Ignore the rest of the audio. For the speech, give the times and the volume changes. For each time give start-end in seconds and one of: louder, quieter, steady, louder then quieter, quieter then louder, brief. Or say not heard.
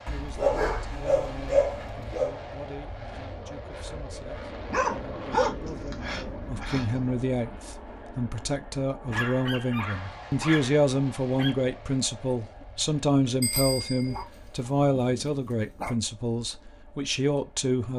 0.1-17.9 louder.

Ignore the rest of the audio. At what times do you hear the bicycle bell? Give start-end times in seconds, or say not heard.
13.4-14.2.